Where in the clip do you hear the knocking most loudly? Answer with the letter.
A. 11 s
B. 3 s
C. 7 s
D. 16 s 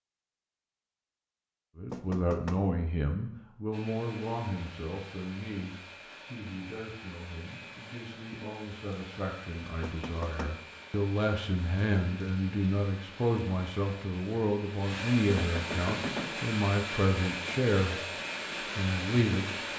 D.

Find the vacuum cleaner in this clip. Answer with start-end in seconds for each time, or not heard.
3.7-19.7.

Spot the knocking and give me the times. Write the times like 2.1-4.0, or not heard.
1.9-2.6, 9.8-10.6, 15.3-16.4.